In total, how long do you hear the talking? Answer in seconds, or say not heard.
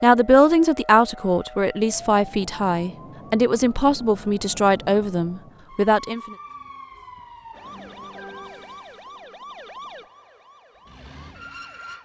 6 s.